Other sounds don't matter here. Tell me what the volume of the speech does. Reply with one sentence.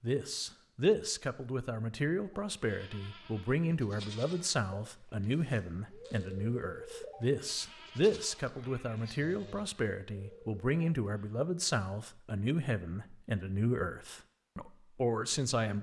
The loudness of the speech stays about the same.